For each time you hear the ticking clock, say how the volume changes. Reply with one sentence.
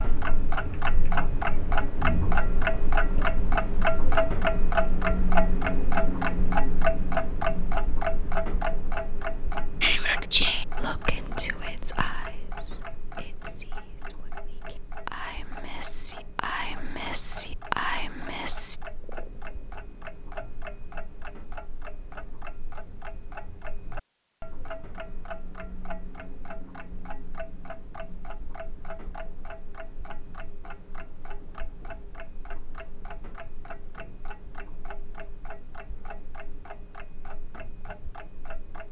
The ticking clock can be heard from 0.0 to 38.8 s, getting quieter.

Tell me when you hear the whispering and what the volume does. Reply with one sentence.
You can hear the whispering from 9.8 to 18.8 s, getting quieter then louder.